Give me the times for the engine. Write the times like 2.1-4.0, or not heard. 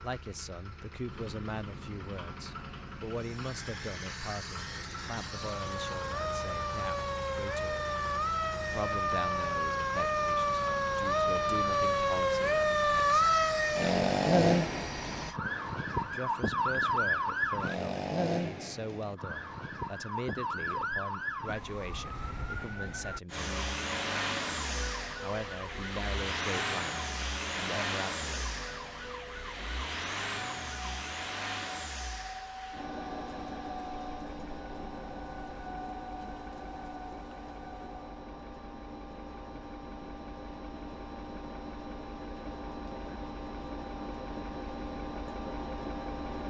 0.0-15.4, 23.3-46.4.